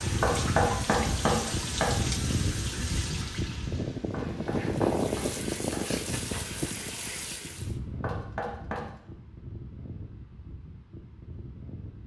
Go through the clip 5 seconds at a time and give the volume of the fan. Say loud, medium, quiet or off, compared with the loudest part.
loud, loud, quiet.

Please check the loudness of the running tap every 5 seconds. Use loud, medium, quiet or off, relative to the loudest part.
loud, loud, off.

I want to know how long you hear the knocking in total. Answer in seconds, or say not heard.
4 s.